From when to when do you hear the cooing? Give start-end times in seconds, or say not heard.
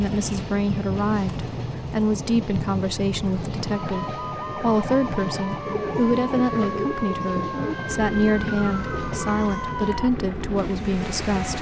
5.6-11.5.